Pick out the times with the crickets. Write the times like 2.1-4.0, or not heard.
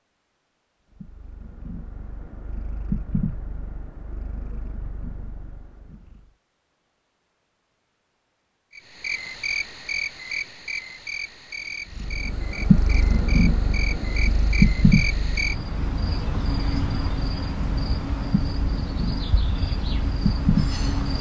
8.8-21.1.